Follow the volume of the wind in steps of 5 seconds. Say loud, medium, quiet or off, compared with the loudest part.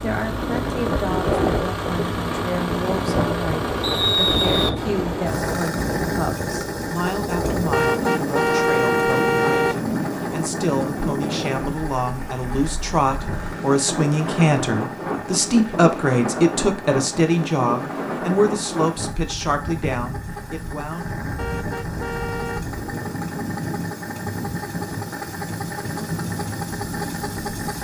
loud, loud, loud, loud, medium, medium.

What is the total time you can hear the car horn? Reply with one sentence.
You can hear the car horn for 3 seconds altogether.